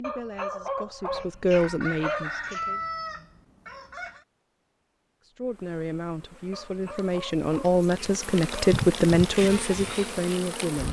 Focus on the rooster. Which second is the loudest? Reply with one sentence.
The loudest moment of the rooster is at 3 seconds.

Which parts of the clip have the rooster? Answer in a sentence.
The rooster can be heard from 1.1 to 4.2 s.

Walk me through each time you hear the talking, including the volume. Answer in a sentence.
The talking can be heard briefly from 0.0 to 2.8 s; and from 5.3 to 10.8 s, getting louder then quieter.